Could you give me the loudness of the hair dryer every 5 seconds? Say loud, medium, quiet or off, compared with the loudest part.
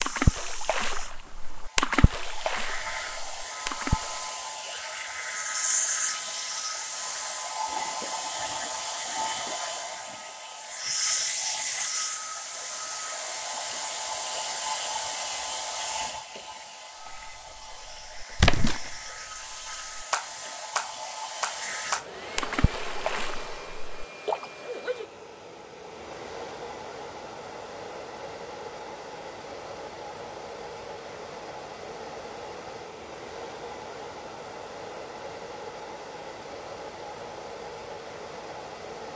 medium, loud, loud, medium, medium, medium, medium, medium.